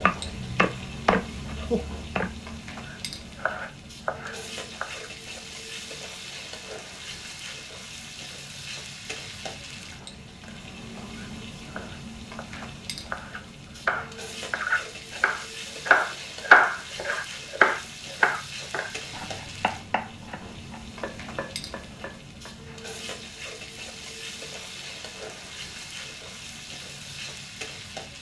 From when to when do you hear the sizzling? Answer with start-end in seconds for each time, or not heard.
0.0-28.1.